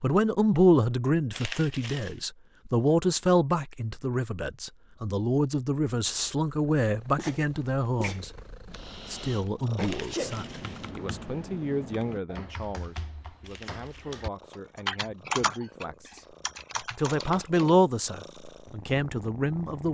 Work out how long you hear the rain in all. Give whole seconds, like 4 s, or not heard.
not heard.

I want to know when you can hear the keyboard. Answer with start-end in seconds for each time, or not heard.
8.7-17.8.